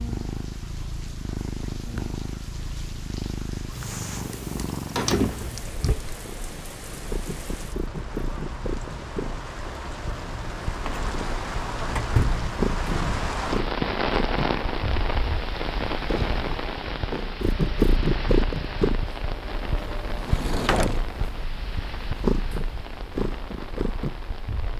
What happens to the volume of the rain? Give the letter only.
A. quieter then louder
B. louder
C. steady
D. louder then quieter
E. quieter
D.